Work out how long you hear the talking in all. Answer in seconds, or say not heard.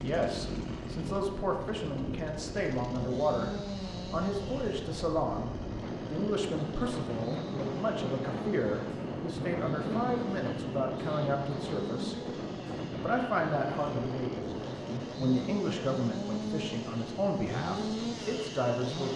18 s.